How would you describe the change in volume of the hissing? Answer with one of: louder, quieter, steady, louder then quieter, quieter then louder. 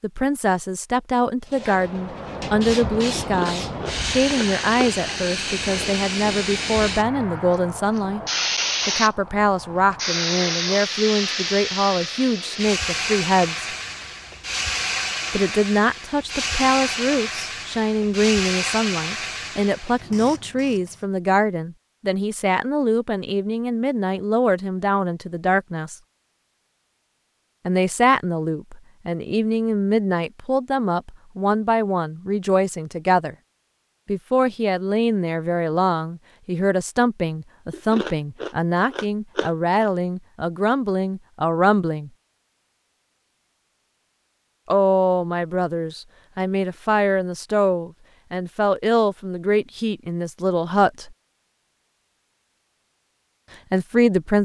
steady.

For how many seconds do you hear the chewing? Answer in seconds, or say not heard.
4 s.